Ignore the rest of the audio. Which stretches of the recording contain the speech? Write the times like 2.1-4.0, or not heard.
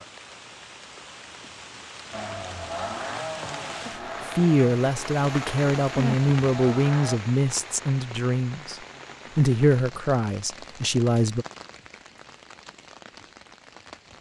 4.2-8.8, 9.3-11.4.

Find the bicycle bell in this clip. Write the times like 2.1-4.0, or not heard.
not heard.